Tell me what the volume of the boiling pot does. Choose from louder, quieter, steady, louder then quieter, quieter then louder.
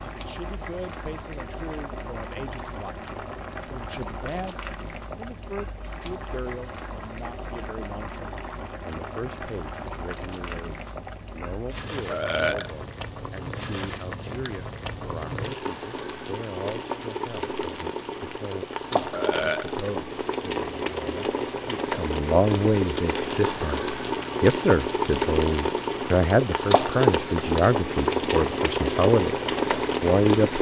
louder.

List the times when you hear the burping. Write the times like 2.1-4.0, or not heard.
12.1-12.7, 19.1-19.8.